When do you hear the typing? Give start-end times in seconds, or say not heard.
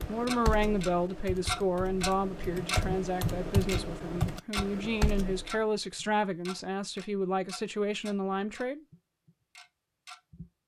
0.0-5.6.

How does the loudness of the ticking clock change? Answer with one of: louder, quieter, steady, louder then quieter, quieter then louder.
quieter.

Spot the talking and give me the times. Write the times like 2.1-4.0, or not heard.
0.1-8.8.